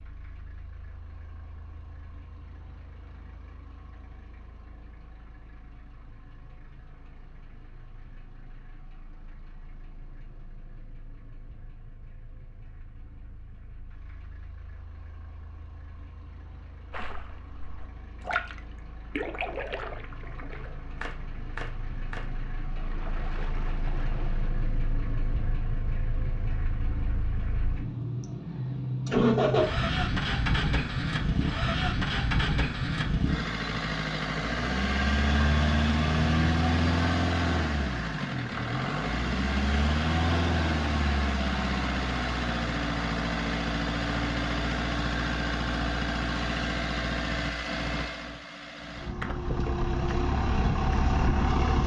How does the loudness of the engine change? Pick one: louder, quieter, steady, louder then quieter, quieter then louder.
louder.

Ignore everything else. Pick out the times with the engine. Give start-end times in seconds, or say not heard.
0.0-51.8.